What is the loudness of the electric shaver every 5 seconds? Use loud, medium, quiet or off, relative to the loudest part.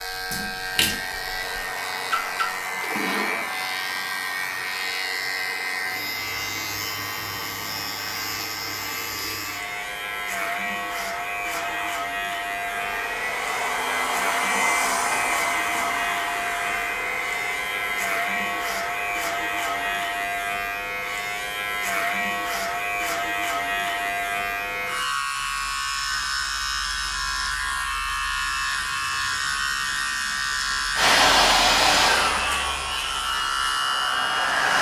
medium, medium, loud, loud, loud, loud, loud.